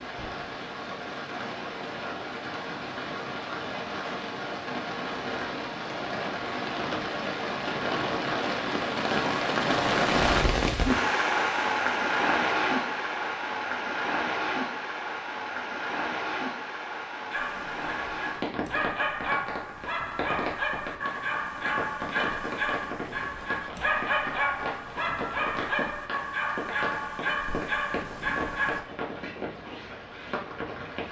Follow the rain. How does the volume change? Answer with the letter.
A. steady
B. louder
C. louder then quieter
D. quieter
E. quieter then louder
C.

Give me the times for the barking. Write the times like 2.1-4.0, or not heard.
17.3-28.8.